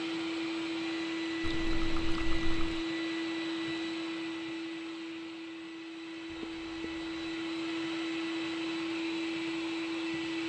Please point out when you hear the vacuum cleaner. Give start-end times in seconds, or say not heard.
0.0-10.4.